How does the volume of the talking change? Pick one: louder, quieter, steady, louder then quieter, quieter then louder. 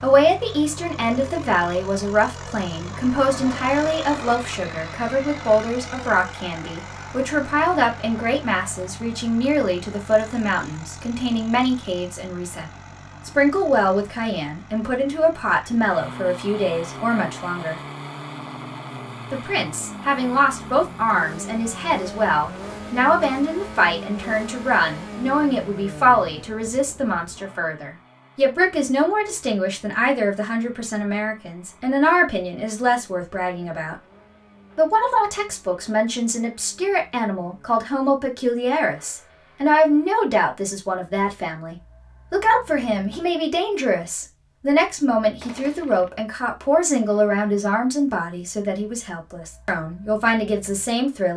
steady.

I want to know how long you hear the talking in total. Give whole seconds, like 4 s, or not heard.
48 s.